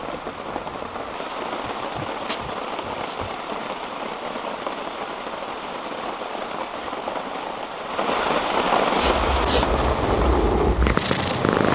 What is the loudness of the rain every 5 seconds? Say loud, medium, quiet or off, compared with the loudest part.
medium, loud, loud.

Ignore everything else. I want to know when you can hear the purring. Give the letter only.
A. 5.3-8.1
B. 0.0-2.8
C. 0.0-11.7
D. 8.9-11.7
D.